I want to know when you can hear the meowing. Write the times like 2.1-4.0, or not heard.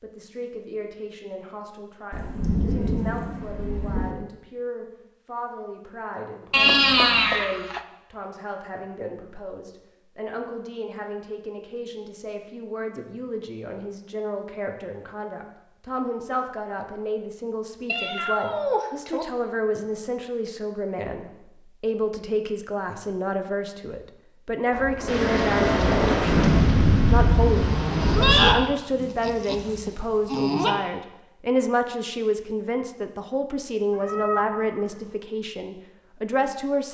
6.5-7.8, 17.9-19.2, 33.9-35.1.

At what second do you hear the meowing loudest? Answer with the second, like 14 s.
7 s.